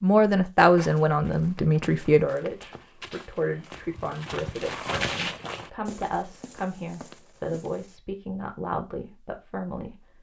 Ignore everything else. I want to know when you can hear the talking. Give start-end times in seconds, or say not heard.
0.0-10.1.